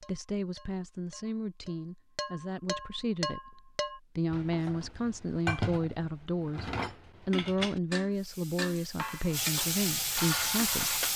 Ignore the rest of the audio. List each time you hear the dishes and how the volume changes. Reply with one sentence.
The dishes can be heard from 0.0 to 11.0 s, getting louder.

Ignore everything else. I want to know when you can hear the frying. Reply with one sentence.
You can hear the frying from 8.1 to 11.1 s.